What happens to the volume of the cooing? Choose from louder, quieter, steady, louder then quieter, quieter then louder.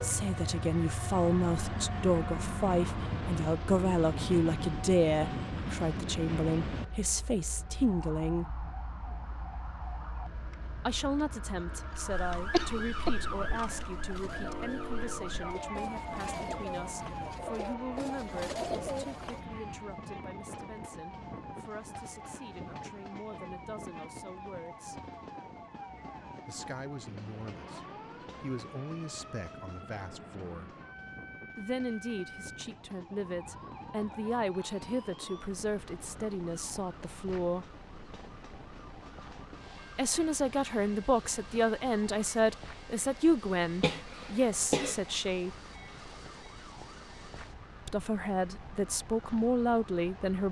louder.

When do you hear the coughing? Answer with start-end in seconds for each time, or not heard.
12.5-13.1, 43.8-45.1.